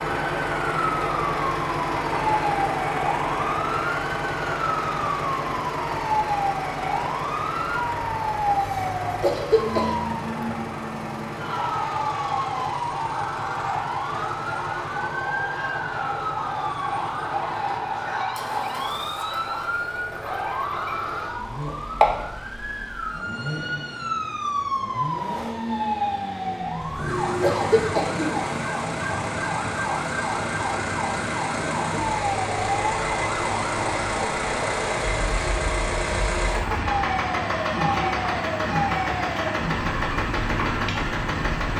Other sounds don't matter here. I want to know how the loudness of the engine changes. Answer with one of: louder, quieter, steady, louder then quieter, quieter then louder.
quieter then louder.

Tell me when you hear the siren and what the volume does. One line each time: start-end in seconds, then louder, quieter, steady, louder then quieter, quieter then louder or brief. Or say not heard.
0.0-41.7 steady.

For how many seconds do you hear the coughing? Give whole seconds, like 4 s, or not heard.
2 s.